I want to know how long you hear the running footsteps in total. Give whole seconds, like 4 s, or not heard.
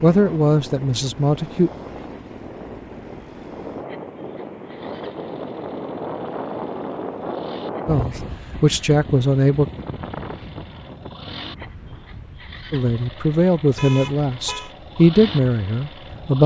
not heard.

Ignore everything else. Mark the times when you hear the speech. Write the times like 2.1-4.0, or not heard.
0.0-1.7, 7.8-9.7, 12.7-16.4.